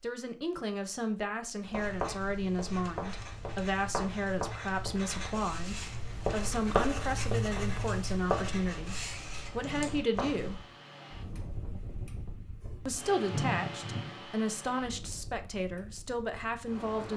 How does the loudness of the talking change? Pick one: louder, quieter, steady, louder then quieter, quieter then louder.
steady.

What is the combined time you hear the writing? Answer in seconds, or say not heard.
9 s.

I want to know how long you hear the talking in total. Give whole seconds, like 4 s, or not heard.
15 s.